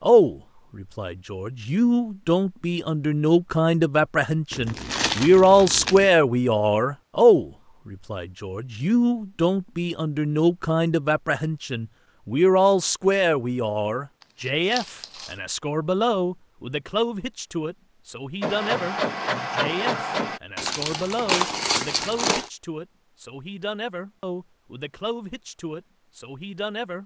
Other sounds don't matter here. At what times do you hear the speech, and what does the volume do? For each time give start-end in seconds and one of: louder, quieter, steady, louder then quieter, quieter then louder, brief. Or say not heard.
0.0-27.0 quieter.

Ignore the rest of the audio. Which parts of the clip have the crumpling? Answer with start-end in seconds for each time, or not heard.
4.5-6.1, 14.4-15.3, 20.6-22.5.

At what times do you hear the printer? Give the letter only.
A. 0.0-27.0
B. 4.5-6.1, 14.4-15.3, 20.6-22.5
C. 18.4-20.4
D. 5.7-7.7
C.